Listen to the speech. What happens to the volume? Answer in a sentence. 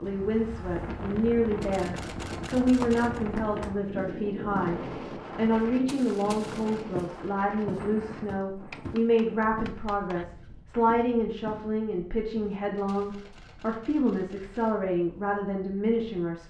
The loudness of the speech stays about the same.